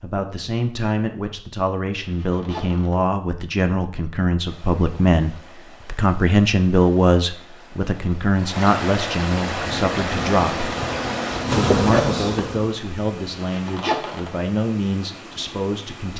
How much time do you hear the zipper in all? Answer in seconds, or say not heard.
2 s.